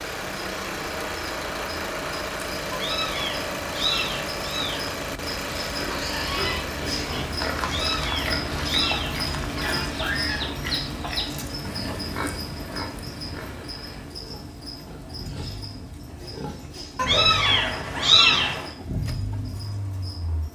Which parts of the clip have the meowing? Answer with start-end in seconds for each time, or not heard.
2.7-5.0, 7.6-9.2, 16.9-18.6.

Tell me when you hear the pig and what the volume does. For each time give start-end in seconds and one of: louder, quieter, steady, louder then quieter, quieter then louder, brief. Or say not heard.
5.8-16.9 quieter.